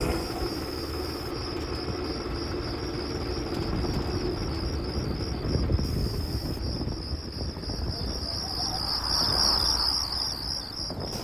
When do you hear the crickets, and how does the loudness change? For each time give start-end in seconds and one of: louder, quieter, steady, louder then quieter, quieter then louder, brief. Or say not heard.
0.0-11.1 louder.